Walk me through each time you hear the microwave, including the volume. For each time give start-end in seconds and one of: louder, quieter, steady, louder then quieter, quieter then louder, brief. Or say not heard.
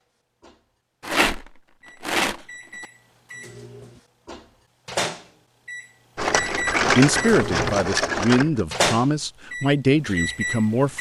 0.4-10.9 louder.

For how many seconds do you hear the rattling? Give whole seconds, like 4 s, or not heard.
4 s.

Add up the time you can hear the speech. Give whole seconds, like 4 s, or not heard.
4 s.